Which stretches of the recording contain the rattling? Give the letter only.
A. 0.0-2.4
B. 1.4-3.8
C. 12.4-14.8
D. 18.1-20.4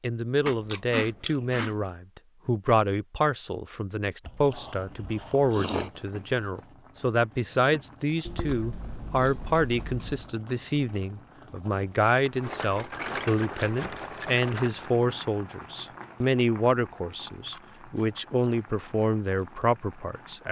C.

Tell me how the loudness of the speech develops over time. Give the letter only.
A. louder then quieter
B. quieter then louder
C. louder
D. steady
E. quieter
D.